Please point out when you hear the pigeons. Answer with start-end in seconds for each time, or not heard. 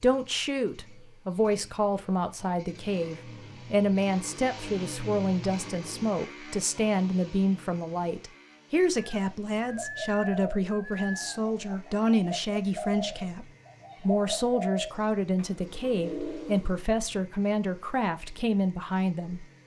8.9-16.8.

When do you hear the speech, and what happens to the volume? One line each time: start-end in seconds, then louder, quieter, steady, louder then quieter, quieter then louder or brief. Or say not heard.
0.0-19.6 steady.